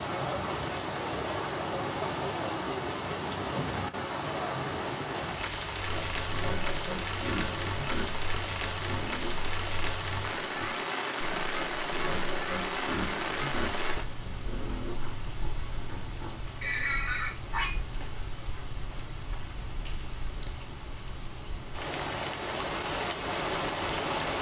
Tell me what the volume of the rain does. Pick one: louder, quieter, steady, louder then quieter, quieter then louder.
quieter then louder.